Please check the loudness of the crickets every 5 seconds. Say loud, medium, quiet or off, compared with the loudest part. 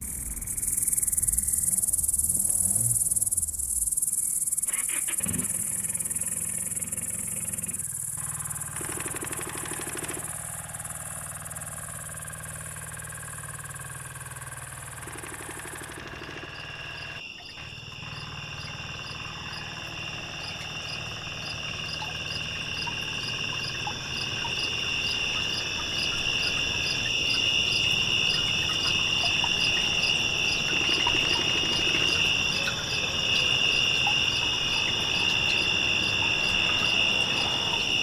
quiet, quiet, quiet, quiet, medium, loud, loud, loud.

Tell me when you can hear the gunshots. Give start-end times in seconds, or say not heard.
8.8-10.3, 15.0-16.6, 30.6-32.2.